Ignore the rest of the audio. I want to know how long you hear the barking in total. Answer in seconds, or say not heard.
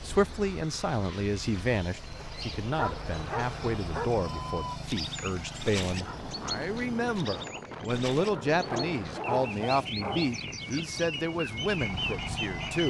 3 s.